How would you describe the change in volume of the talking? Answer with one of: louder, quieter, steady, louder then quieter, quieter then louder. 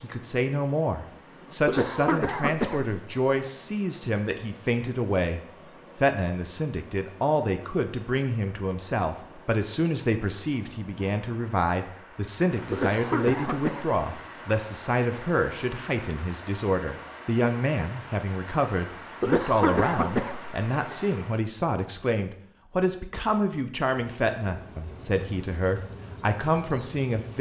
steady.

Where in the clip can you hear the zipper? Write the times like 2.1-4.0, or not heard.
not heard.